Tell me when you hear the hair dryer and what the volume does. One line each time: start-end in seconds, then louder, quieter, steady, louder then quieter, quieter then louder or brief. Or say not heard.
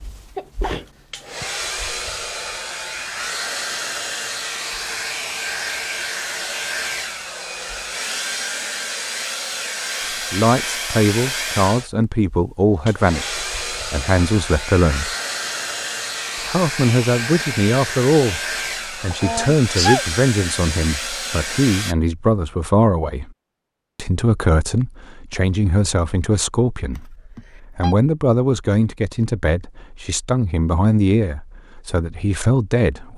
0.0-21.9 steady.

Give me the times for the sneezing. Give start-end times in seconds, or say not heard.
0.3-1.4, 19.1-20.1, 26.9-27.9.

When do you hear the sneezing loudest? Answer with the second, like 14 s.
20 s.